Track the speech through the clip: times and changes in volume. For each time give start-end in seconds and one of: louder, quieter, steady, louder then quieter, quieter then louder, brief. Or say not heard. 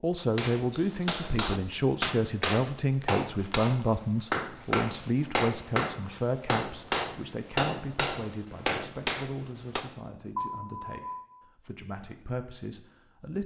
0.0-13.4 quieter.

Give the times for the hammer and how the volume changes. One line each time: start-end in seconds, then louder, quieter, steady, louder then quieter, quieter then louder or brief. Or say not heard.
0.2-10.0 steady.